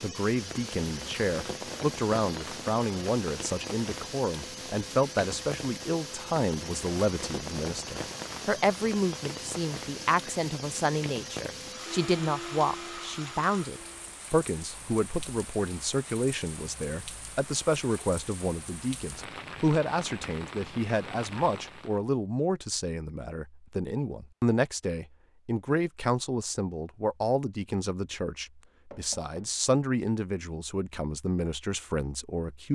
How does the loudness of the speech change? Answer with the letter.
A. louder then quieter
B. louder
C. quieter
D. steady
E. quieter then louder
D.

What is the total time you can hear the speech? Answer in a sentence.
You can hear the speech for 33 seconds altogether.